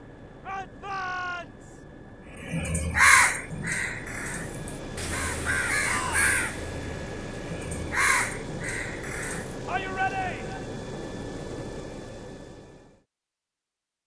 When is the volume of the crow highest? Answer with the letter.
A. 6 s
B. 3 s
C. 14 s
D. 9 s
B.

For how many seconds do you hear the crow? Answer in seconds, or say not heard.
7 s.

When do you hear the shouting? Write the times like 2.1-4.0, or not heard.
0.5-1.8, 5.8-6.3, 9.7-10.7.